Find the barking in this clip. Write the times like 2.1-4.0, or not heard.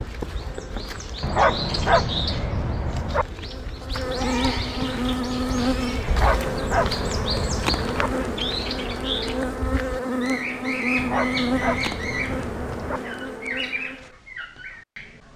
1.2-3.2, 6.0-8.1, 10.9-13.0.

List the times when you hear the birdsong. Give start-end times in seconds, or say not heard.
0.0-15.3.